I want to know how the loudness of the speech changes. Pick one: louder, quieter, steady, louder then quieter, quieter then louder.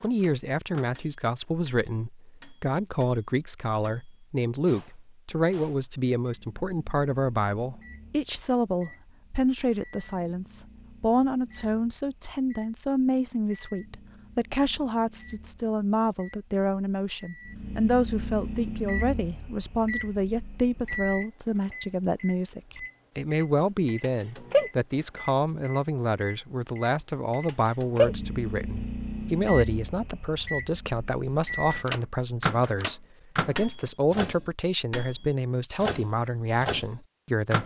steady.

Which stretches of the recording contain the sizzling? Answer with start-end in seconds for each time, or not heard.
not heard.